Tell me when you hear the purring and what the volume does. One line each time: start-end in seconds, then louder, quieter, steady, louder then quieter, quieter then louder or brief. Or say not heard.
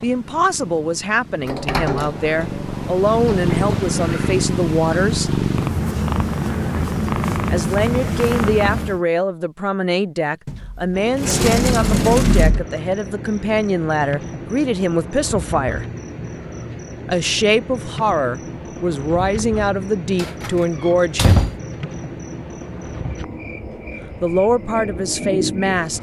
0.0-9.1 louder.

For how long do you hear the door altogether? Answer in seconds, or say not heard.
6 s.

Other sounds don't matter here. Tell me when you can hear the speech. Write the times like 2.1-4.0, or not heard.
0.0-5.3, 7.5-15.8, 17.1-21.4, 24.2-25.9.